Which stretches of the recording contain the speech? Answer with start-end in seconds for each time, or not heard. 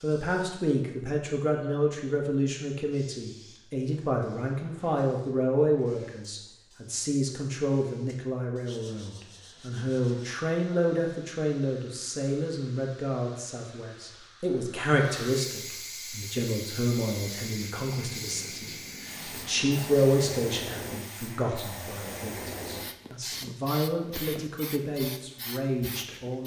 0.0-26.4.